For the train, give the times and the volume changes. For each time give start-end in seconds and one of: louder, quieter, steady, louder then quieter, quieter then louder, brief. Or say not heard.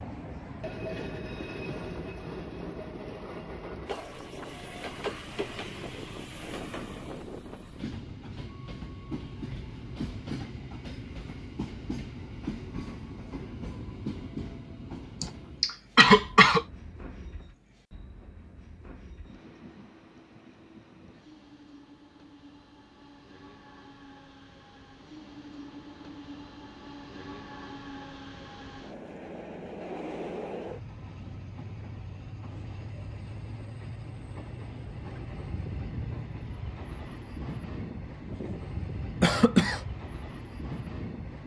0.0-41.4 quieter then louder.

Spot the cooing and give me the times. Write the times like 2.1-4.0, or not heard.
not heard.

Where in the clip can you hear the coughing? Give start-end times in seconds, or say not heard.
15.2-16.6, 39.2-39.8.